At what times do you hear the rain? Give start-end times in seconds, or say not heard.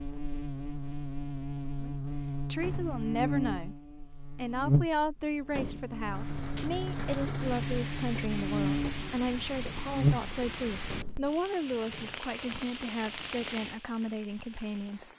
6.0-15.1.